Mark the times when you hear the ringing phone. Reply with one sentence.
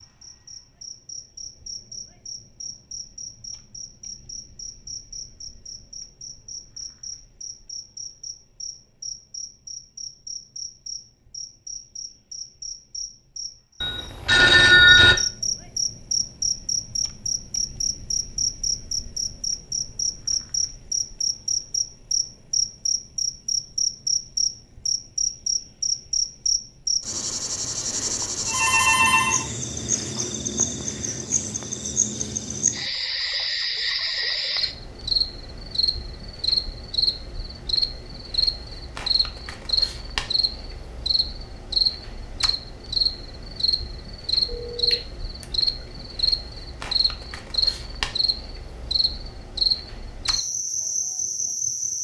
The ringing phone can be heard from 13.8 to 15.2 s, from 27.9 to 29.5 s and from 44.5 to 45.5 s.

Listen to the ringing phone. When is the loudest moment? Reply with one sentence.
The volume of the ringing phone peaks at 15 seconds.